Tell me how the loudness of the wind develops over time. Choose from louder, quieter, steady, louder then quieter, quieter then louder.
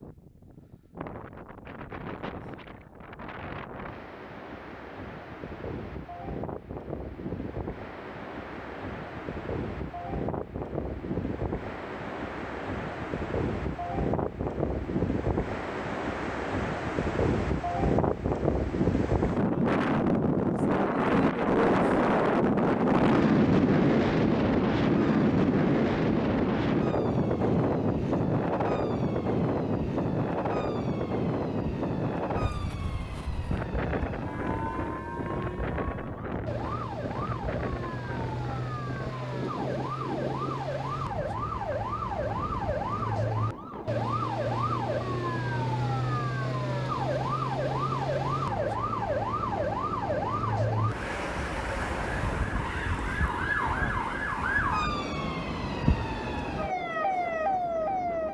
louder then quieter.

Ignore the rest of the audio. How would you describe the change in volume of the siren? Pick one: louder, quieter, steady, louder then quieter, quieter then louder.
louder.